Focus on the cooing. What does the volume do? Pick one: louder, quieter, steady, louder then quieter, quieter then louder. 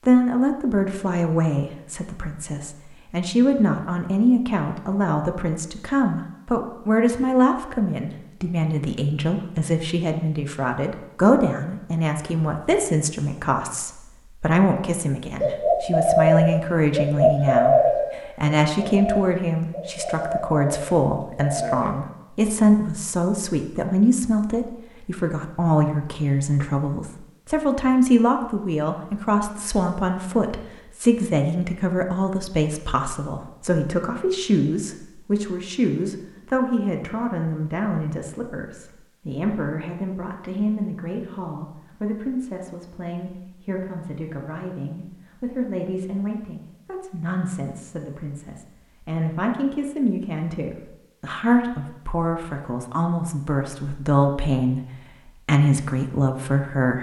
quieter.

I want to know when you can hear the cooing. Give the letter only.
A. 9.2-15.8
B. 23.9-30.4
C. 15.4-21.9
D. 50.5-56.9
C.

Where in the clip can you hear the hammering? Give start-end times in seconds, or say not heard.
not heard.